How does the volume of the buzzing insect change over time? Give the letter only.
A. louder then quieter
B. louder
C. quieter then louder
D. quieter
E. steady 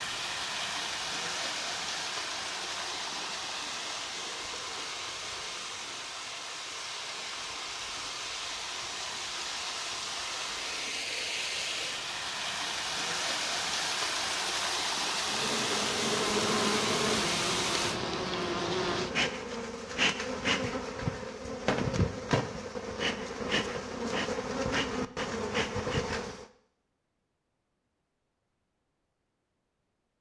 E.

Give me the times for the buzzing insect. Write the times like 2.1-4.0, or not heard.
15.2-26.4.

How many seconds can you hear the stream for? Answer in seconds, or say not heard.
18 s.